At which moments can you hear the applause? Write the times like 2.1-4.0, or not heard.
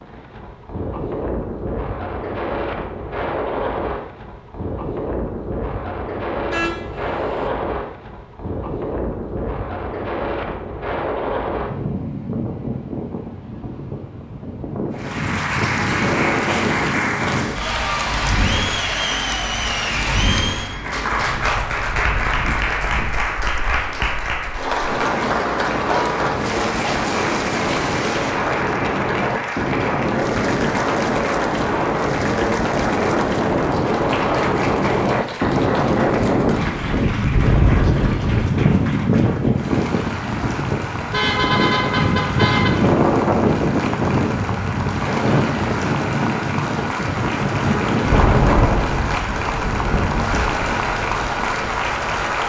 14.9-52.4.